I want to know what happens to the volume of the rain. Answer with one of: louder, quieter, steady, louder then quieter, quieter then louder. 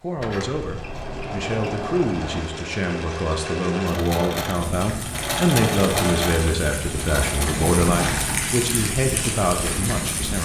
louder.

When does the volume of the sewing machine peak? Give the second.
6 s.